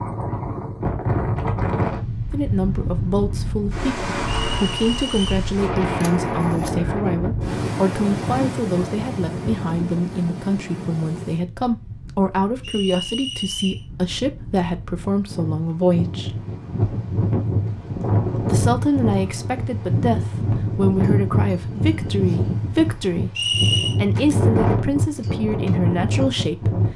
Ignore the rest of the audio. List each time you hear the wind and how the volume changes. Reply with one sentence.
The wind can be heard from 0.0 to 26.9 s, getting quieter then louder.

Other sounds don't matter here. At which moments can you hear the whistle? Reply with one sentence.
You can hear the whistle from 4.4 to 5.5 s, from 12.6 to 13.8 s and from 23.4 to 23.9 s.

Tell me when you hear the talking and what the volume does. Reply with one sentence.
The talking can be heard from 2.3 to 16.4 s, at a steady volume; and from 18.4 to 26.9 s, at a steady volume.